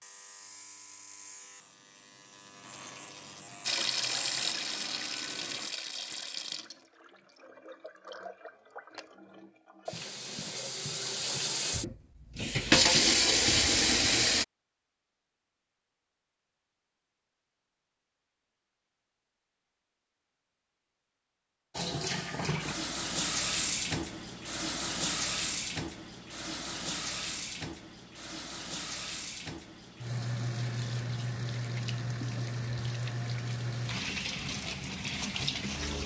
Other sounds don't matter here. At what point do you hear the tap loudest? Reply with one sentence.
The volume of the tap peaks at 13 seconds.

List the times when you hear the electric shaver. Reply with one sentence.
The electric shaver can be heard from 0.0 to 5.8 s.